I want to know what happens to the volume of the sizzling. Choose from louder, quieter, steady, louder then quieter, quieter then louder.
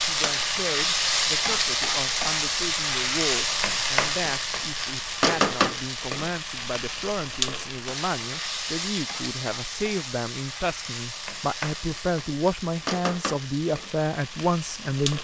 quieter.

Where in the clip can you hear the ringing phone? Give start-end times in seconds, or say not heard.
not heard.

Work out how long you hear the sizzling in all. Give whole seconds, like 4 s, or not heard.
15 s.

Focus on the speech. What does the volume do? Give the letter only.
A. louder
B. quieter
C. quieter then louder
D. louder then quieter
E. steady
A.